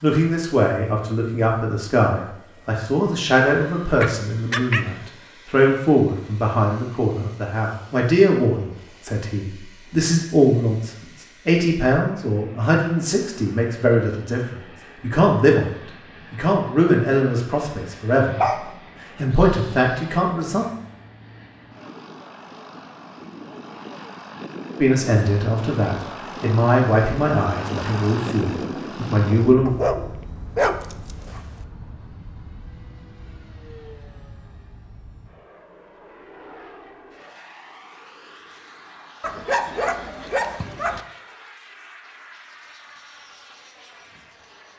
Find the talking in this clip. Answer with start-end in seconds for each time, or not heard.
0.0-18.4, 19.1-20.6, 24.8-29.7.